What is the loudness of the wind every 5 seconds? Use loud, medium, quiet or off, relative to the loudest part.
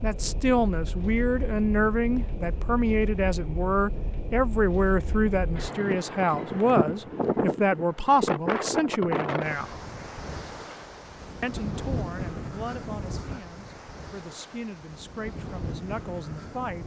medium, loud, medium, medium.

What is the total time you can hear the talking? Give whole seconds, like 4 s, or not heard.
15 s.